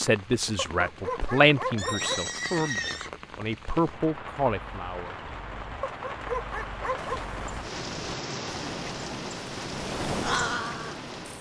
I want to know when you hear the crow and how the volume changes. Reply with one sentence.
The crow can be heard from 7.0 to 11.3 s, getting louder.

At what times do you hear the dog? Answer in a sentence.
The dog can be heard from 0.6 to 2.2 s and from 5.8 to 7.2 s.